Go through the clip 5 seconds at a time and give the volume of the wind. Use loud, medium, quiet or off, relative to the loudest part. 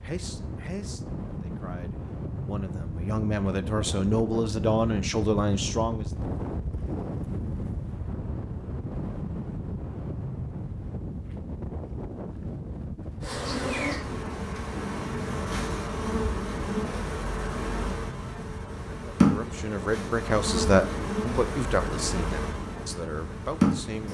loud, loud, loud, medium, medium.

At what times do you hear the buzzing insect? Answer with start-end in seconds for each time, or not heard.
13.2-24.0.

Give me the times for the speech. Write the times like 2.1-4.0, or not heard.
0.0-6.0, 18.9-24.0.